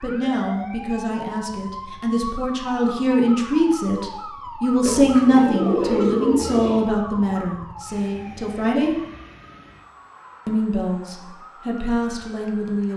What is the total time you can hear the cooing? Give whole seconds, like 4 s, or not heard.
2 s.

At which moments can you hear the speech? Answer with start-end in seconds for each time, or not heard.
0.0-8.9, 10.4-12.9.